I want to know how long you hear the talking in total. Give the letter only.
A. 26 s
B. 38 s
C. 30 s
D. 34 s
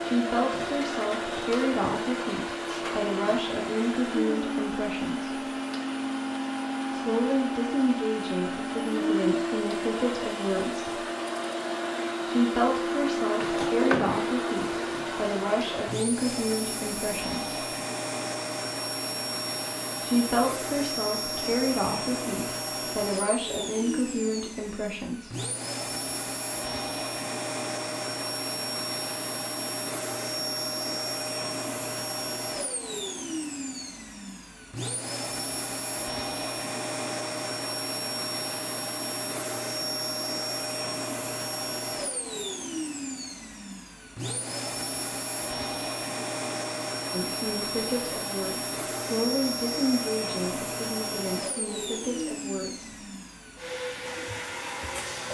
A.